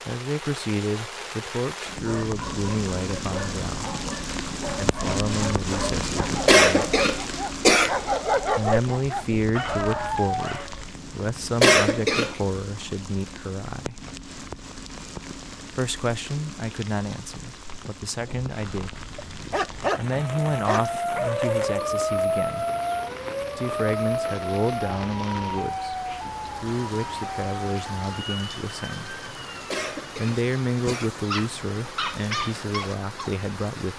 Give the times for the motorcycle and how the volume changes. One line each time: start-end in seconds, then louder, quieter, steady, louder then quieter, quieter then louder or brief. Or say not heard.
not heard.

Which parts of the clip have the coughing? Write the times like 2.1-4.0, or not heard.
6.5-8.0, 11.6-12.3, 29.7-31.1.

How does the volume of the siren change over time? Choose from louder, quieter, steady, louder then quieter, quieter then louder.
quieter.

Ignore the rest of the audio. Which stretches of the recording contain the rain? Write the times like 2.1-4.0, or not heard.
0.0-33.9.